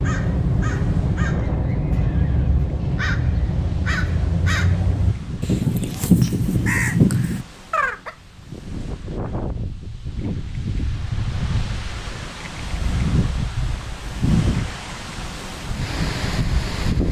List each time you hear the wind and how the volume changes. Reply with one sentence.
You can hear the wind from 0.1 to 17.0 s, getting louder.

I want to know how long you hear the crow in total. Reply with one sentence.
You can hear the crow for 8 seconds altogether.